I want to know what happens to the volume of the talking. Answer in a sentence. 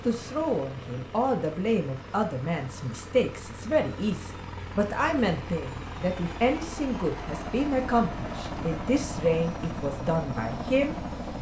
The loudness of the talking stays about the same.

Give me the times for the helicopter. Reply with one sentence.
You can hear the helicopter from 0.0 to 11.3 s.